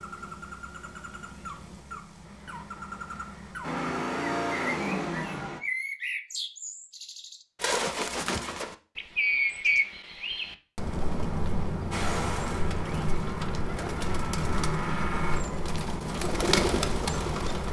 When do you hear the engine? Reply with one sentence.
The engine can be heard from 3.6 to 5.6 s and from 11.9 to 15.4 s.